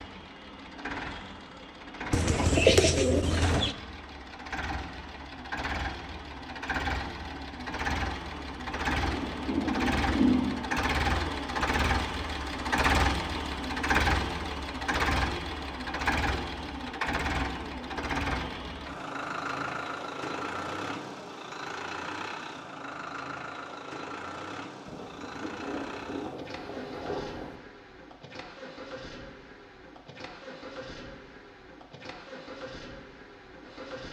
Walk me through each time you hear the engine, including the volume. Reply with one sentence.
You can hear the engine from 0.0 to 34.0 s, getting louder then quieter.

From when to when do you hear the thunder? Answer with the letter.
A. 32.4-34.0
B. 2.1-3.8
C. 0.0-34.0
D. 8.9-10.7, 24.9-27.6
D.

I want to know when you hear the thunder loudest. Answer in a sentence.
The loudest moment of the thunder is at 10 seconds.